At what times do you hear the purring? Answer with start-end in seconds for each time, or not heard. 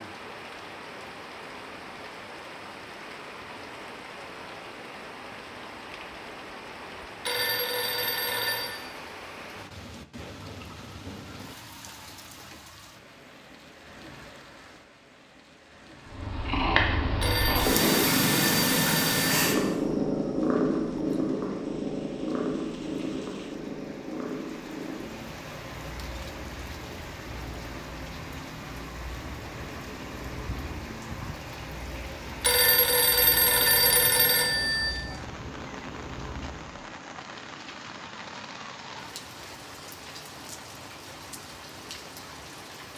16.1-36.9.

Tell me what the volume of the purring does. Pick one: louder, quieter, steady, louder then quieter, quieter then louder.
quieter.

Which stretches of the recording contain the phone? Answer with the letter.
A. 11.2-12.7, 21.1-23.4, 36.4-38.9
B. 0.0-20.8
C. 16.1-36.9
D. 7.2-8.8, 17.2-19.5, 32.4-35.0
D.